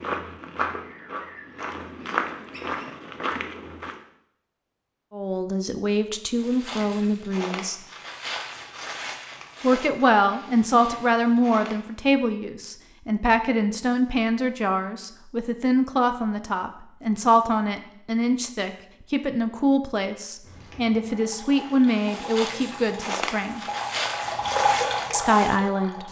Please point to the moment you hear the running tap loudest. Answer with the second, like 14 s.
25 s.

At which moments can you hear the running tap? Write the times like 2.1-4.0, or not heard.
21.1-26.0.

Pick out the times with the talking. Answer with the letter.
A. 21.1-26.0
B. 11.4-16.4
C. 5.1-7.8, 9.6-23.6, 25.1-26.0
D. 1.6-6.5
C.